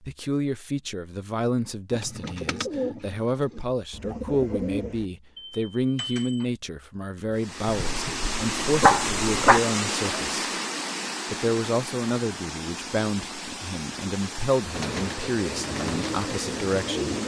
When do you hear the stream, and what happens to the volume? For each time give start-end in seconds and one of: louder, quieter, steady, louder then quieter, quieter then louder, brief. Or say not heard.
7.3-17.2 quieter.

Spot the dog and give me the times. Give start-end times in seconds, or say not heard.
7.7-9.6.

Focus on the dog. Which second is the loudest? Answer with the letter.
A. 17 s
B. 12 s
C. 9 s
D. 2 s
C.